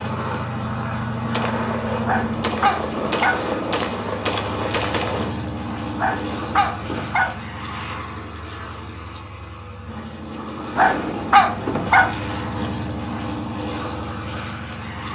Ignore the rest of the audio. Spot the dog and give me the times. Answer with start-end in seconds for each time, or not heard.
2.0-3.5, 6.0-7.4, 10.8-12.2.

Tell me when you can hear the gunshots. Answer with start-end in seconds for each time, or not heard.
1.3-5.3.